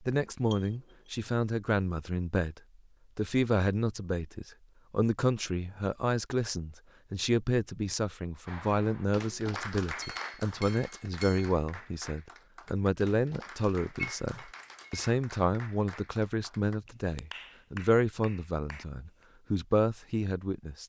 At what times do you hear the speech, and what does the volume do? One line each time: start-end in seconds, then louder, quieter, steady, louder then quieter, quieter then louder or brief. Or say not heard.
0.0-20.8 steady.